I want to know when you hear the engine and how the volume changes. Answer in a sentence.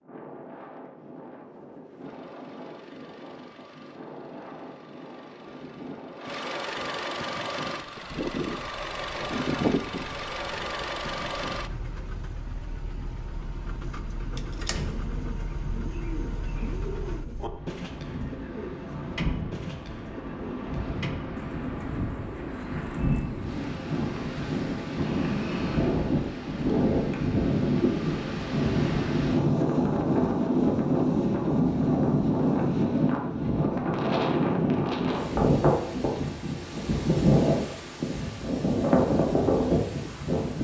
You can hear the engine from 1.9 to 17.2 s, getting louder then quieter.